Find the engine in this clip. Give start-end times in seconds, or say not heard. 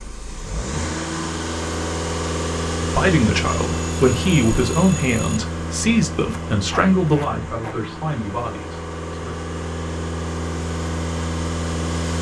0.0-12.1.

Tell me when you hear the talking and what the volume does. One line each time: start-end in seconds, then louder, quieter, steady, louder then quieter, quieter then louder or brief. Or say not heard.
2.8-9.3 quieter.